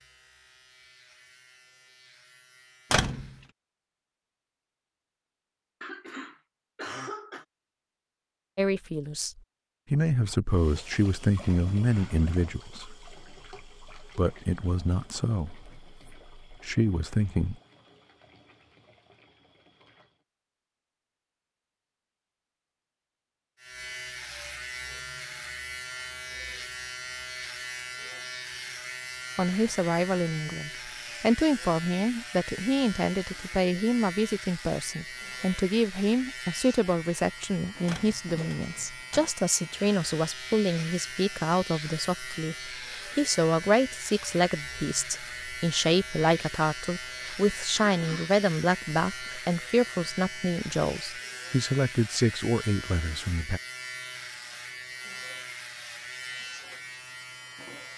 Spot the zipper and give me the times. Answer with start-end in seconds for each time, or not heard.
not heard.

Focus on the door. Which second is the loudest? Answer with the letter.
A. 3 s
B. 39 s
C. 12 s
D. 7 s
A.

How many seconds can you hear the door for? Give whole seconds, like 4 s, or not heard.
2 s.